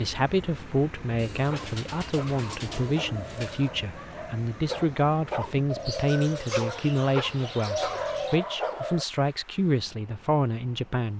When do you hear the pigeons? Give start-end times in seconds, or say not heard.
1.1-3.7, 5.7-8.4.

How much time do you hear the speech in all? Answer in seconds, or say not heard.
11 s.